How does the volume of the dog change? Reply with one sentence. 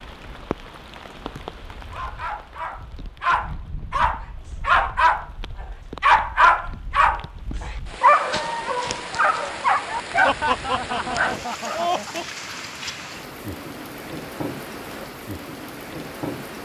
The volume of the dog goes up, then down.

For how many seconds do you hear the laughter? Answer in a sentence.
You can hear the laughter for 2 seconds altogether.